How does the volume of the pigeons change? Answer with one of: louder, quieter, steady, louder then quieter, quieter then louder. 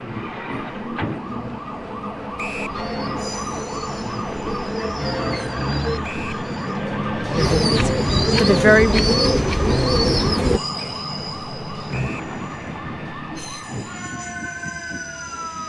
louder.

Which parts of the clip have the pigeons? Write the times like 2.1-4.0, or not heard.
2.6-10.6.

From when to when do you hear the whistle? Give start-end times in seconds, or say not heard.
2.4-2.8, 6.0-6.5, 11.9-12.3.